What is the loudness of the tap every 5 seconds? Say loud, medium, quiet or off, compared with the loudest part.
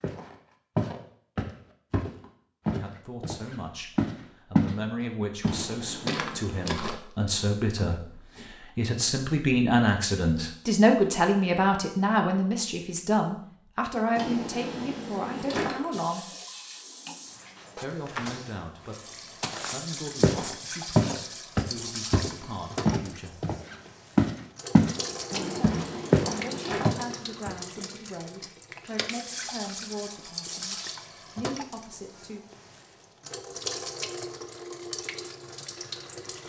off, off, off, loud, loud, loud, loud, loud.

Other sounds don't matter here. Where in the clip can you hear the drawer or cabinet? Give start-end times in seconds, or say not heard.
5.4-7.0, 14.2-16.1, 25.3-27.2.